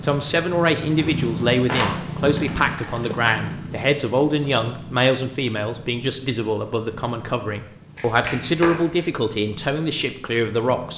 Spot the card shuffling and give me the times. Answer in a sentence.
The card shuffling can be heard from 1.6 to 3.5 s and from 8.0 to 9.0 s.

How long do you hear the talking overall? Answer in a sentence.
The talking can be heard for 11 seconds in total.